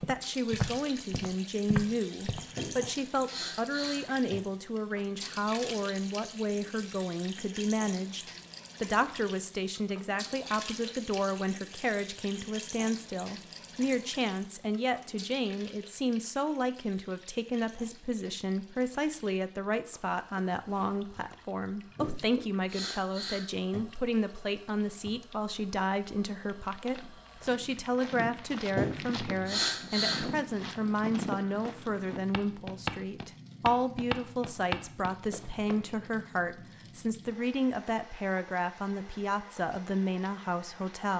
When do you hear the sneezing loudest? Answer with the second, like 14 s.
30 s.